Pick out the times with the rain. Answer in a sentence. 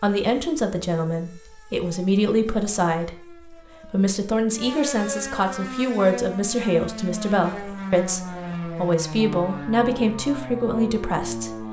You can't hear the rain here.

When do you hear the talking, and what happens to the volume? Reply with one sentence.
The talking can be heard from 0.0 to 11.6 s, at a steady volume.